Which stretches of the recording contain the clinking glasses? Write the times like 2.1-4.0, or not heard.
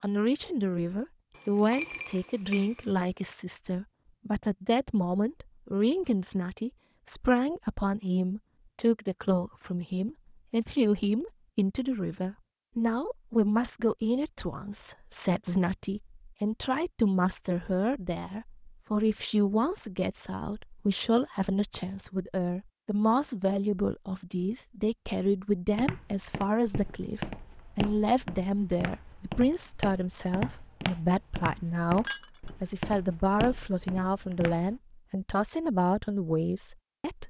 1.4-2.9, 32.0-32.5.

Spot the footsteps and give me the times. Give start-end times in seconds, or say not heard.
25.8-34.8.